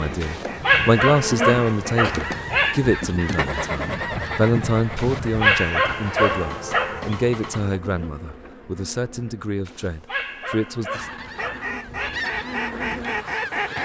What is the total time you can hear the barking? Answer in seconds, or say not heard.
7 s.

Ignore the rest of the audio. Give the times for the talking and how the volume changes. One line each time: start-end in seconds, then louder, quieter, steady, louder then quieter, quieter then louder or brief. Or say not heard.
0.0-11.1 quieter.